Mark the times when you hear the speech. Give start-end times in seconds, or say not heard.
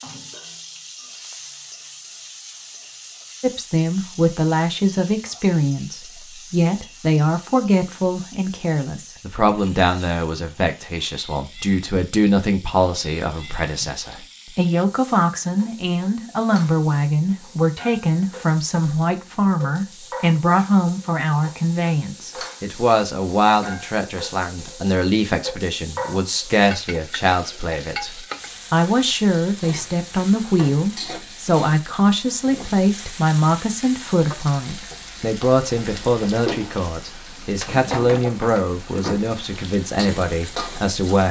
3.4-41.2.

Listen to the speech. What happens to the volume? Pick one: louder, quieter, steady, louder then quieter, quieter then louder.
steady.